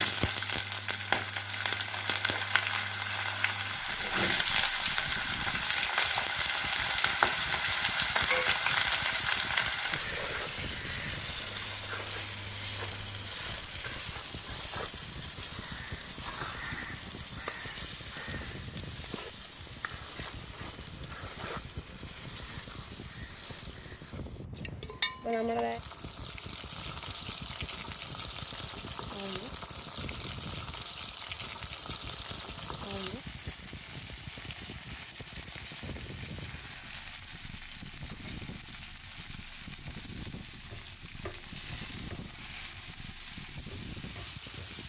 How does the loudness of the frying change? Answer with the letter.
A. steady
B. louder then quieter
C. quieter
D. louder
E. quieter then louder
C.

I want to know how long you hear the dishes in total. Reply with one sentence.
The dishes can't be heard in this clip.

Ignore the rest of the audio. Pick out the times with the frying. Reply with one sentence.
The frying can be heard from 0.0 to 44.8 s.